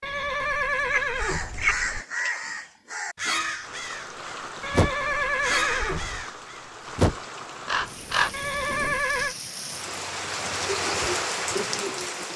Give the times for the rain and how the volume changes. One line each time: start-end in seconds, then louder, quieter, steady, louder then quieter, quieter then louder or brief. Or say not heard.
3.6-12.3 louder.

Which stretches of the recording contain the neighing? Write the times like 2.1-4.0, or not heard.
0.0-2.0, 4.6-6.2, 8.3-9.3.